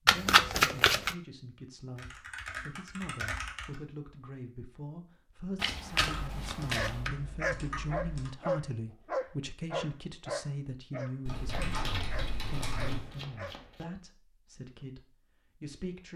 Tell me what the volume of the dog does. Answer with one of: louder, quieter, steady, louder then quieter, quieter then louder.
quieter.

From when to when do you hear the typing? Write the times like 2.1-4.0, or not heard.
1.9-3.8, 5.9-8.3, 11.2-13.2.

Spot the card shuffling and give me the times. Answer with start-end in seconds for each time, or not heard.
0.1-1.1, 5.5-7.1, 11.8-13.8.